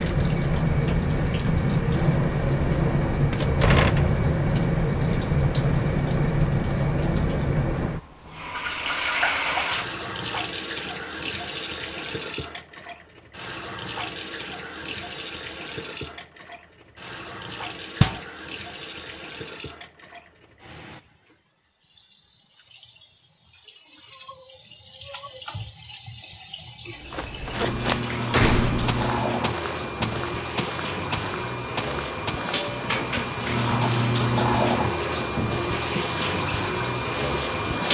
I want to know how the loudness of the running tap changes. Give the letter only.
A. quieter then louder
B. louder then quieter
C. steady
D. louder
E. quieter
A.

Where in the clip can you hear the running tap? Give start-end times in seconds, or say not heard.
0.0-37.8.